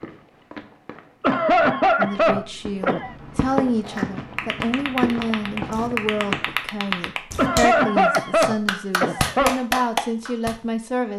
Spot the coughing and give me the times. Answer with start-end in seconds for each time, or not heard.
1.2-3.1, 7.3-9.5.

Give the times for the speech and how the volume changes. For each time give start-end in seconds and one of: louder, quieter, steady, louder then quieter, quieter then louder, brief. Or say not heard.
1.9-11.1 steady.